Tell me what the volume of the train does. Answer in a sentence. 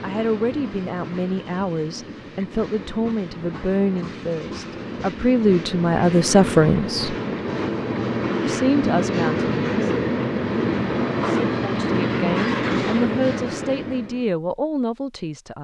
The loudness of the train goes up.